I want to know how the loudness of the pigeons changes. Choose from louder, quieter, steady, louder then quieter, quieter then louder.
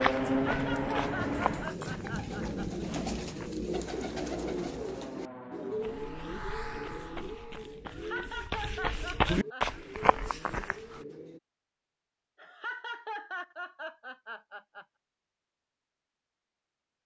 quieter.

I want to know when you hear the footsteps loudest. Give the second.
9 s.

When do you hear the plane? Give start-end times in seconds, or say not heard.
0.0-1.8, 3.7-7.8.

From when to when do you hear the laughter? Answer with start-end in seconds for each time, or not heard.
0.5-2.9, 7.8-9.8, 12.3-14.8.